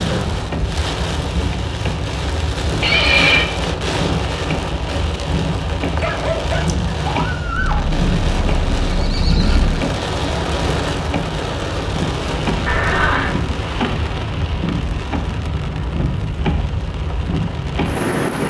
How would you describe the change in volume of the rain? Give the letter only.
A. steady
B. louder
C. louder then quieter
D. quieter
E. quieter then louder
A.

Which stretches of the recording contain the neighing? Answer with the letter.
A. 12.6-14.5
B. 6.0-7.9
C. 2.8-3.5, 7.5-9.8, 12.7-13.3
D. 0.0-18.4
C.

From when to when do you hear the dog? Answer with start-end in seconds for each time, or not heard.
6.0-7.9.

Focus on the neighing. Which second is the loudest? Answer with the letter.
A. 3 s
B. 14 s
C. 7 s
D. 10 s
A.